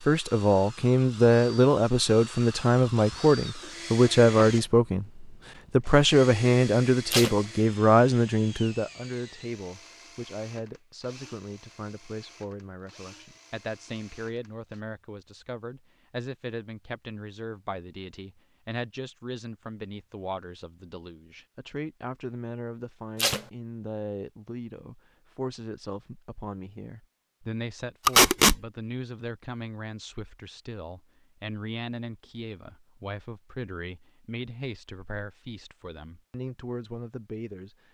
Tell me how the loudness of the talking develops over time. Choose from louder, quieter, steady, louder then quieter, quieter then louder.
quieter.